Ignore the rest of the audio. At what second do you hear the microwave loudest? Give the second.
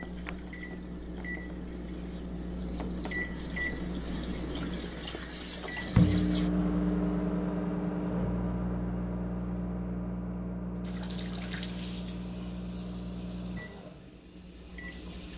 6 s.